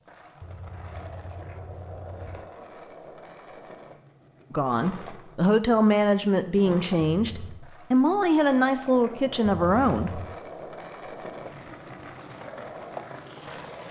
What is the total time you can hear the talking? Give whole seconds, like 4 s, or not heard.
6 s.